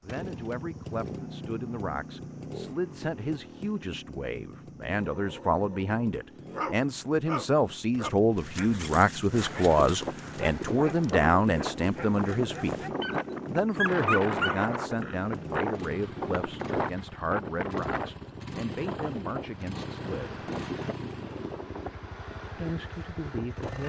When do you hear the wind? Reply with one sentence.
You can hear the wind from 9.3 to 23.8 s.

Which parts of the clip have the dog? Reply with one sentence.
The dog can be heard from 5.0 to 15.7 s.